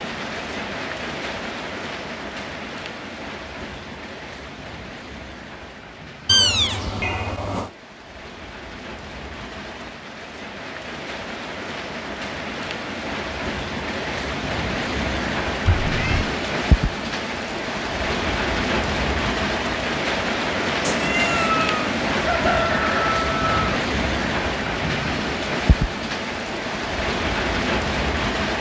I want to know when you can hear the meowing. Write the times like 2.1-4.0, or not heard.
6.2-7.7, 15.7-16.3, 20.8-22.1.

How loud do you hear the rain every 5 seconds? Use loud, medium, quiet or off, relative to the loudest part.
medium, quiet, medium, loud, loud, loud.